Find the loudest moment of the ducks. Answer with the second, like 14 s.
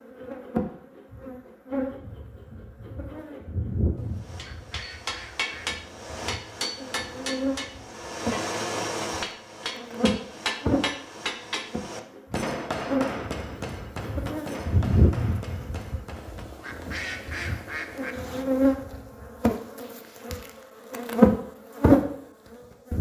17 s.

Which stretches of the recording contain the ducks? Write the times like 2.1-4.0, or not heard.
4.0-5.8, 16.1-18.1.